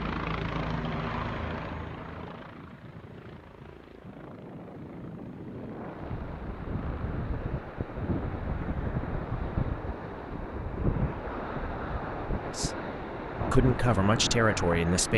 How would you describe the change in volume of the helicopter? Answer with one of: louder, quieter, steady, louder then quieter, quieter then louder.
quieter.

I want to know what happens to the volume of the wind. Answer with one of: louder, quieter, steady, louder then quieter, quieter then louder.
louder.